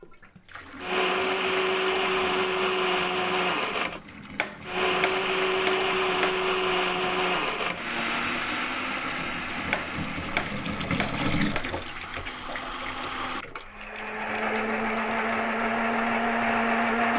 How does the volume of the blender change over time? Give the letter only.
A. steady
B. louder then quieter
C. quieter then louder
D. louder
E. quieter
C.